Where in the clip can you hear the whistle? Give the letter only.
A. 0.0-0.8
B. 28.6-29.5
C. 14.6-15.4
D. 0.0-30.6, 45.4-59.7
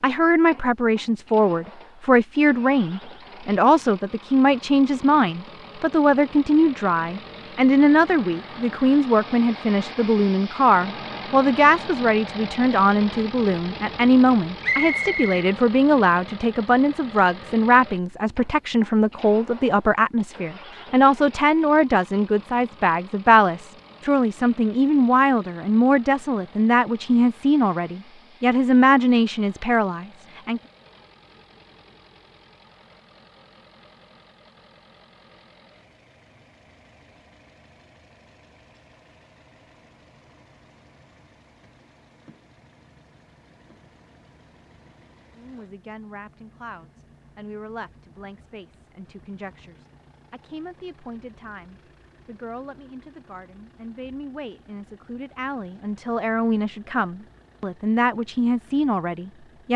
C.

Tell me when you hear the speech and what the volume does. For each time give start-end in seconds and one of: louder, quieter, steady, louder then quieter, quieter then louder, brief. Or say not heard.
0.0-30.6 steady
45.4-59.7 louder.